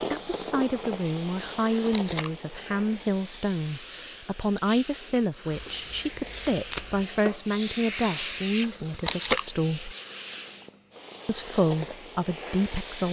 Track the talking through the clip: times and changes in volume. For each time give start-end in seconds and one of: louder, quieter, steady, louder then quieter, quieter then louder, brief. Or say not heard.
0.1-9.9 steady
11.2-13.0 brief.